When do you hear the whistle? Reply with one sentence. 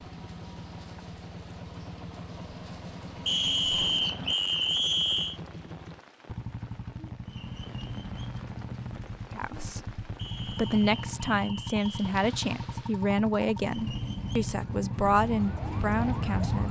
The whistle can be heard from 3.2 to 5.4 s and from 10.2 to 12.2 s.